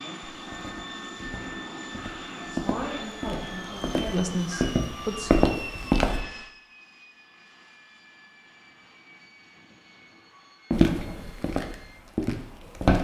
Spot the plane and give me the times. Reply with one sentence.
You can hear the plane from 0.0 to 12.8 s.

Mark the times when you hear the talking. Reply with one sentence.
The talking can be heard from 2.5 to 5.3 s.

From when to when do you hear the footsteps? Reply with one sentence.
You can hear the footsteps from 0.3 to 6.2 s and from 10.7 to 12.9 s.